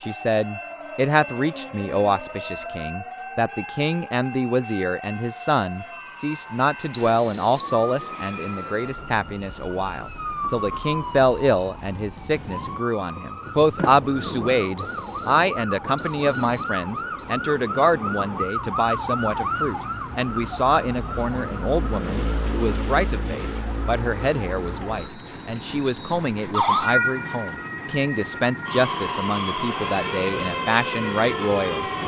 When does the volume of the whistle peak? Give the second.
7 s.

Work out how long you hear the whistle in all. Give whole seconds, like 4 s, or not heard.
5 s.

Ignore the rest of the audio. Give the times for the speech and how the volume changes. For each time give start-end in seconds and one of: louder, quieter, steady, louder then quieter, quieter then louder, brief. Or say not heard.
0.0-31.8 steady.